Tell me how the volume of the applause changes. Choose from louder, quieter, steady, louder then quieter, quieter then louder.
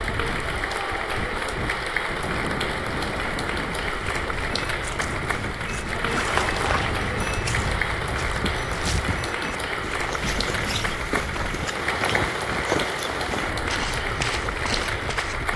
steady.